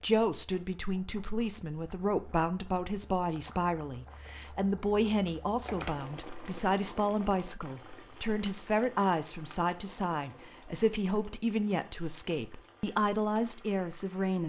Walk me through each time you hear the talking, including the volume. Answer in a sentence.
You can hear the talking from 0.0 to 14.4 s, at a steady volume.